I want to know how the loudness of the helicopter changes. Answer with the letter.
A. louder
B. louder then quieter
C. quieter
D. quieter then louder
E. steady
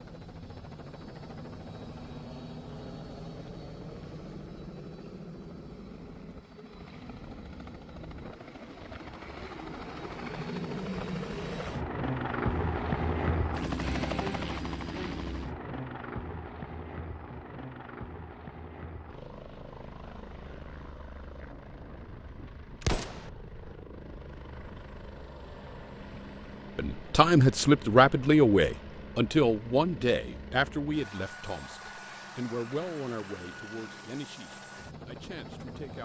B.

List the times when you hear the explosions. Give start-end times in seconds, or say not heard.
22.8-23.3.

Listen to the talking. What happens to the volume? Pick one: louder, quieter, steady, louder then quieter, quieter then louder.
quieter.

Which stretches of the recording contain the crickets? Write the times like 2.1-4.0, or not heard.
not heard.